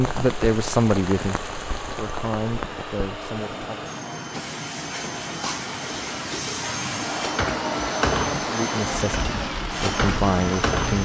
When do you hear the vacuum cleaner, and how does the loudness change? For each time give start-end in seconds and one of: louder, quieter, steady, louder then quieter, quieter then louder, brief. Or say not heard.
0.0-10.9 louder.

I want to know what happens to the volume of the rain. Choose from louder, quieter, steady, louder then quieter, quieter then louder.
quieter then louder.